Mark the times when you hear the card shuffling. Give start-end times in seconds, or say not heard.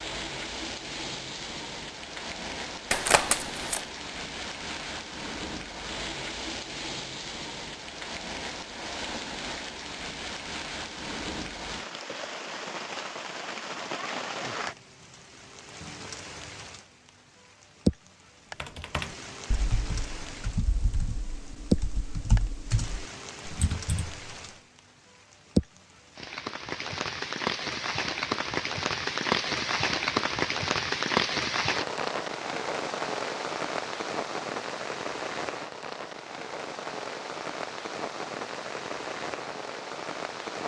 2.9-3.8.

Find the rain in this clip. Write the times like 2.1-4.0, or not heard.
0.0-40.6.